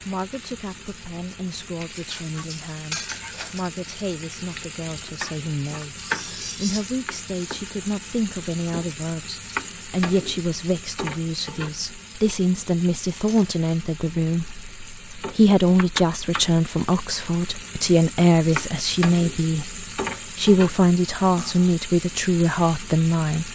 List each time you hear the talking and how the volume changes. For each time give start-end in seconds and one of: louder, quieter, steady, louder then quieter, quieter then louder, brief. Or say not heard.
0.1-23.5 louder.